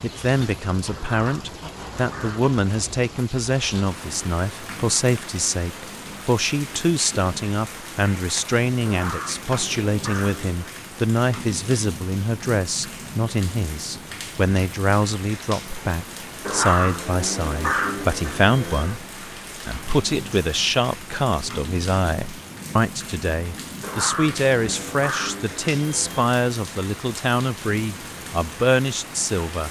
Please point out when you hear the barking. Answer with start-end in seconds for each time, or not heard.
0.9-2.5, 8.8-10.8, 16.4-19.0, 23.8-26.3.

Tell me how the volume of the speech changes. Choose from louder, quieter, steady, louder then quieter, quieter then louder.
steady.